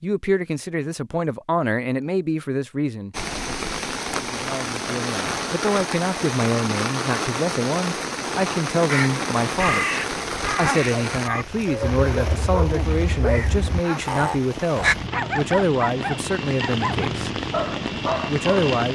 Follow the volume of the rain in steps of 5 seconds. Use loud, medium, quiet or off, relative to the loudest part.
loud, loud, medium, loud.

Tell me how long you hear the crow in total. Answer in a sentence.
The crow can be heard for 6 seconds in total.